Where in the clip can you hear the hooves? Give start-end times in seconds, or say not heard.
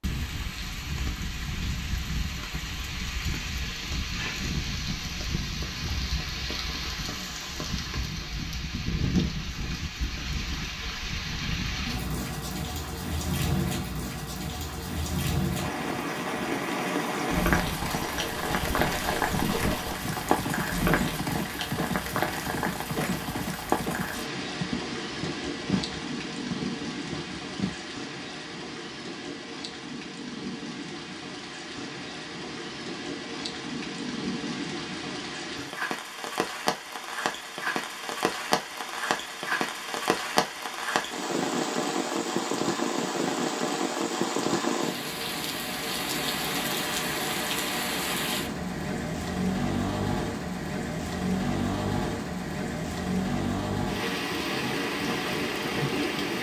17.3-27.9.